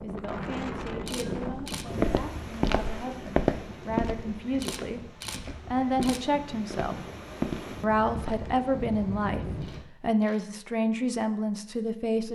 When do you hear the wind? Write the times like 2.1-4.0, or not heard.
0.0-9.8.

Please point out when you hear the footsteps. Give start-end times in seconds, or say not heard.
1.2-8.6.